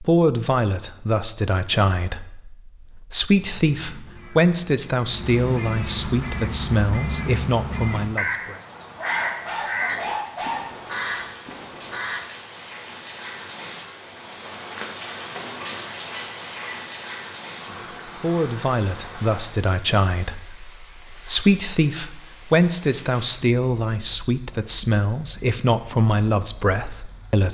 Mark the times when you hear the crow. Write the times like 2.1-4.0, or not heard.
3.4-12.2.